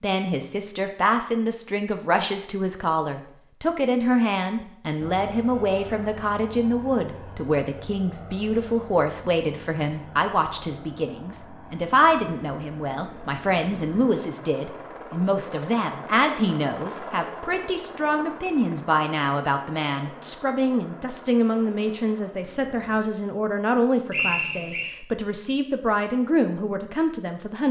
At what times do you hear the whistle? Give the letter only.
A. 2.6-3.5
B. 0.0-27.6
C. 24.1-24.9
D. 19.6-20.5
C.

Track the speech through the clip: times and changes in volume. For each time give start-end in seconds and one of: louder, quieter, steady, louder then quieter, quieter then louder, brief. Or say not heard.
0.0-27.6 steady.